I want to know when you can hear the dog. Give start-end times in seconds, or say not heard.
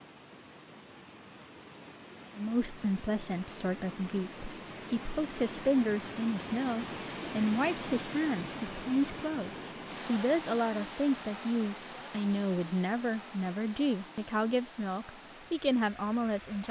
not heard.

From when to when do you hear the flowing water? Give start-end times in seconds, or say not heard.
0.0-16.6.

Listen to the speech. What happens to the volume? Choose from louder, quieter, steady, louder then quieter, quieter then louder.
steady.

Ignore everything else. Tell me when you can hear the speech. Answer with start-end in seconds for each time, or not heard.
2.4-16.6.